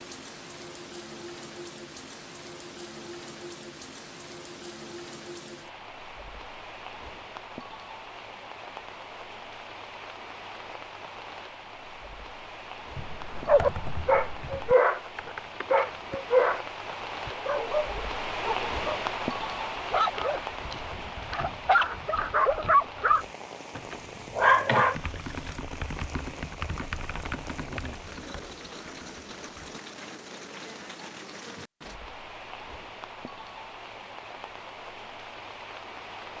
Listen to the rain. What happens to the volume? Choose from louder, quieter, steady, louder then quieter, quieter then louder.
louder then quieter.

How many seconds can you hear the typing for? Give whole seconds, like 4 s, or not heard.
8 s.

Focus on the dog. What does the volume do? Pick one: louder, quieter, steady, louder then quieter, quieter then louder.
quieter then louder.